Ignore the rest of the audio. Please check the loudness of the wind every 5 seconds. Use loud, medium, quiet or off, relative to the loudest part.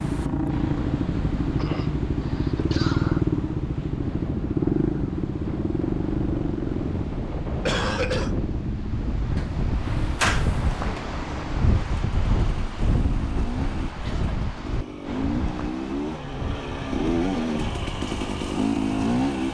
medium, loud, loud, medium.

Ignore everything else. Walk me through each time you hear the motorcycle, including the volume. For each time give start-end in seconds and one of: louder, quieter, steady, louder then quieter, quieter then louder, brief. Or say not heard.
0.0-19.5 quieter then louder.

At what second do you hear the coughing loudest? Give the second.
8 s.